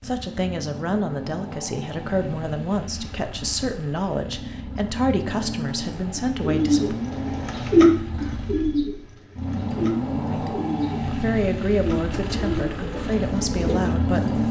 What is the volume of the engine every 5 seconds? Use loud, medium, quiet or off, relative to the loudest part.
medium, loud, loud.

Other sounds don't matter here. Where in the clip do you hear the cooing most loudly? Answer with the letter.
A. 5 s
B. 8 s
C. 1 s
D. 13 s
B.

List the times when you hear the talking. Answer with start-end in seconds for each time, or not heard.
0.0-7.0, 10.2-14.4.